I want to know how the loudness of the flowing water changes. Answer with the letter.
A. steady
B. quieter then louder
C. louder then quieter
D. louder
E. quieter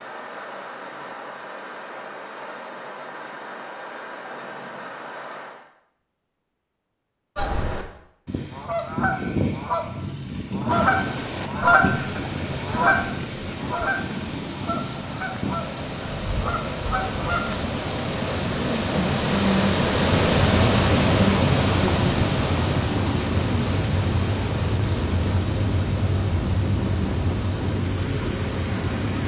C.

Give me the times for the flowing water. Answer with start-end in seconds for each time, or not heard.
10.7-29.2.